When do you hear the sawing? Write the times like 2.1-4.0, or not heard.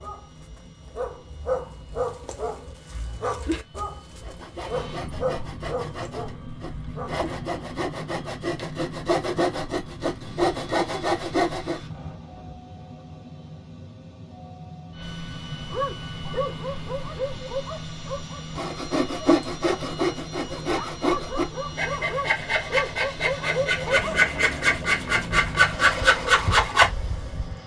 4.2-11.8, 18.6-27.6.